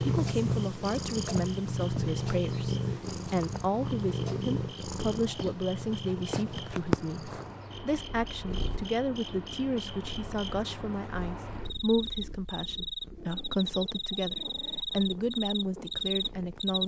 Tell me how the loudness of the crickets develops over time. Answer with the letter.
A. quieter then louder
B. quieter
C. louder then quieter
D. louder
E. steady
D.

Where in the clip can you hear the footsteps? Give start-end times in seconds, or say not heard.
not heard.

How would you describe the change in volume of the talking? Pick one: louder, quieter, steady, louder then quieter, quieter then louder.
steady.